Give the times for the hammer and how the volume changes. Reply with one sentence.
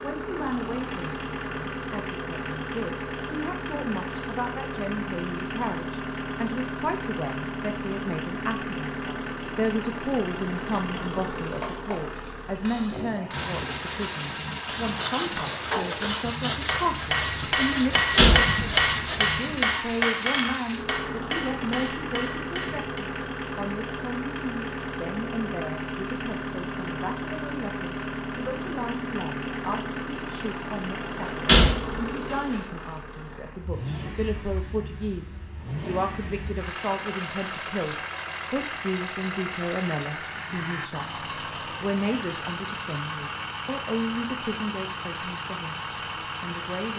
The hammer can be heard from 11.6 to 22.9 s, getting louder then quieter.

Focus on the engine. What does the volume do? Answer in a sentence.
The volume of the engine stays about the same.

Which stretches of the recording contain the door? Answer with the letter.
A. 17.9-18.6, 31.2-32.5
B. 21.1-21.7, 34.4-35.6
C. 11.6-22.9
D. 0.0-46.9
A.